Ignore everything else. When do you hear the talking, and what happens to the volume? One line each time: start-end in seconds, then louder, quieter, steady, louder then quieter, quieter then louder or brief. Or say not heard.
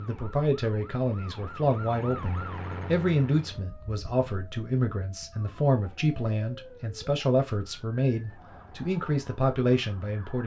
0.0-10.4 steady.